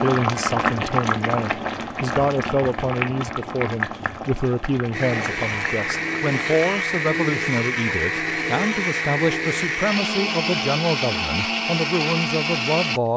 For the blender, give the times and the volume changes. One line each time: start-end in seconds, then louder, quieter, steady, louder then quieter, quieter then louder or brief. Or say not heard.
4.9-13.1 steady.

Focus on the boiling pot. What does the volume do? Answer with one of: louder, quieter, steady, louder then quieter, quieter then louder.
quieter.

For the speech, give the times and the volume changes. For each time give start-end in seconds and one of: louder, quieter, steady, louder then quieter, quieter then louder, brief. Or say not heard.
0.0-13.1 steady.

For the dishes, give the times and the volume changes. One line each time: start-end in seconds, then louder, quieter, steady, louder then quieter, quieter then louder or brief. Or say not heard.
not heard.